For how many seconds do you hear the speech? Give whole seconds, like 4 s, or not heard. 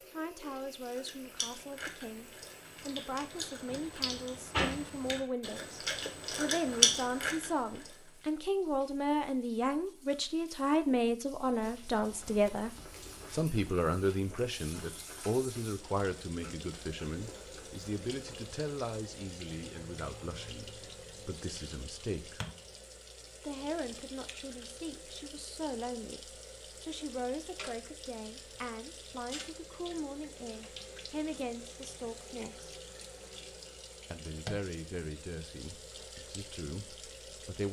35 s.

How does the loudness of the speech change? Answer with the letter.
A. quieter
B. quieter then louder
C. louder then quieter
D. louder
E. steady
C.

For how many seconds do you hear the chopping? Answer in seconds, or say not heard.
not heard.